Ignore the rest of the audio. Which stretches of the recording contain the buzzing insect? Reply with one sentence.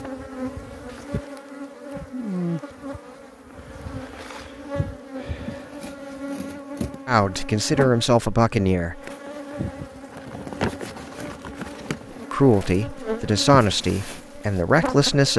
You can hear the buzzing insect from 0.0 to 15.3 s.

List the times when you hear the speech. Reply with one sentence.
The speech can be heard from 7.0 to 9.0 s and from 12.3 to 15.3 s.